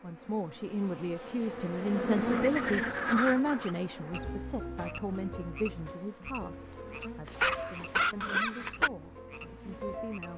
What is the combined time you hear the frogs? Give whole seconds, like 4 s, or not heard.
8 s.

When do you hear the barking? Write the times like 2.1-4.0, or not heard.
7.2-8.9.